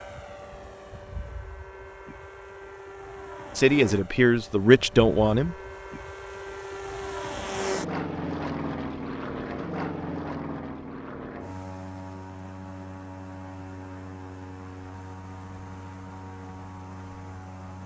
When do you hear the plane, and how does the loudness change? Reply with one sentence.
The plane can be heard from 0.0 to 17.8 s, getting louder then quieter.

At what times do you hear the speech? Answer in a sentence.
You can hear the speech from 3.5 to 5.5 s.